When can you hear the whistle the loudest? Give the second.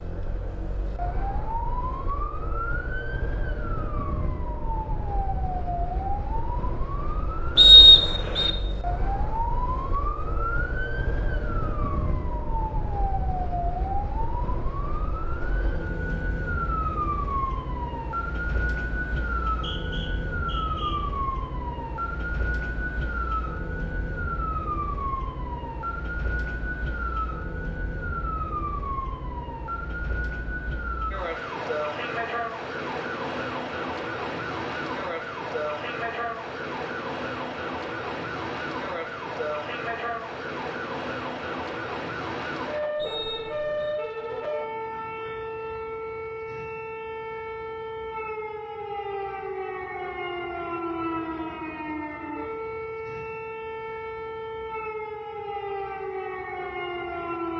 8 s.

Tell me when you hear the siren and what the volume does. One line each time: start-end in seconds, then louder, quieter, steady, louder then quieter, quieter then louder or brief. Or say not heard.
0.0-57.5 steady.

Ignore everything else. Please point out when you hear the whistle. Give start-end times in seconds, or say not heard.
7.5-8.5, 19.4-20.9, 43.0-44.0.